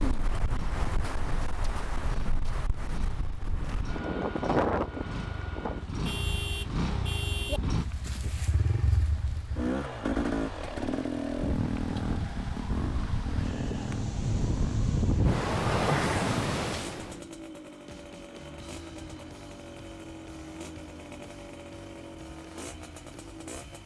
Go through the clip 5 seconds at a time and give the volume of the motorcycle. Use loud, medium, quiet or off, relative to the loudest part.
medium, loud, loud, medium, medium.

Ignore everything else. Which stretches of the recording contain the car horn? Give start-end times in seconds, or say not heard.
6.0-7.6.